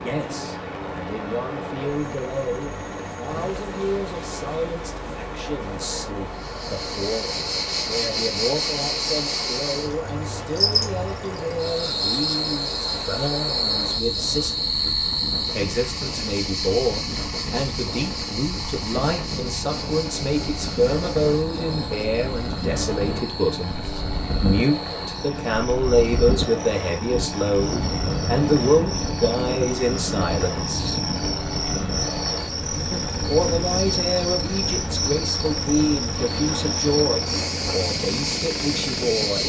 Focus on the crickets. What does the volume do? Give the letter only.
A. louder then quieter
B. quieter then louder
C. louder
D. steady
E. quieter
B.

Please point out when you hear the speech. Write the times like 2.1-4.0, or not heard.
0.0-14.6, 15.6-31.0, 32.9-39.4.